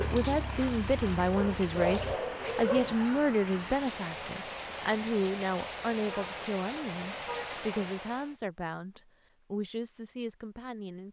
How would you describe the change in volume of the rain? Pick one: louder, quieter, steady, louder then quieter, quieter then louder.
steady.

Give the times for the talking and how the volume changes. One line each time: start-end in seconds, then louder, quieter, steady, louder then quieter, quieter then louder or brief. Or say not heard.
0.0-11.0 quieter.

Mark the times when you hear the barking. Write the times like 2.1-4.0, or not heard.
1.4-3.0.